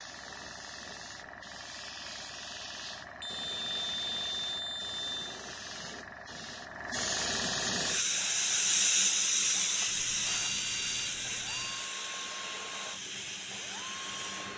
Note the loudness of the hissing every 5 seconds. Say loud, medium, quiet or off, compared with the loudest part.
quiet, loud, medium.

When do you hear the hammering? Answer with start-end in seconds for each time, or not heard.
not heard.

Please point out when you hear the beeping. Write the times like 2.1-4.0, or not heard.
3.0-5.4, 9.8-11.9.